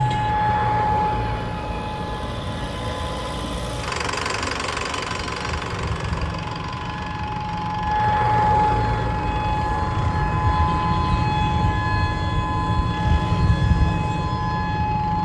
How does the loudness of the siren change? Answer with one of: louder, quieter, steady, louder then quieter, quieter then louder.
quieter then louder.